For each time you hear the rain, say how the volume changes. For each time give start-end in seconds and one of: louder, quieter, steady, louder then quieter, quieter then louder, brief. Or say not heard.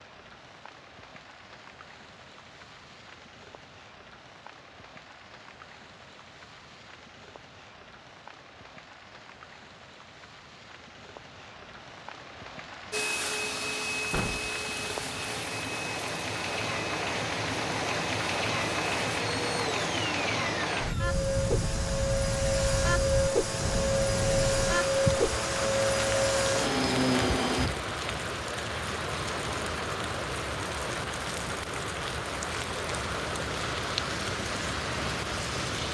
0.0-35.8 louder.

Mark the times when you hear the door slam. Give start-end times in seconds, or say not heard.
14.1-14.6.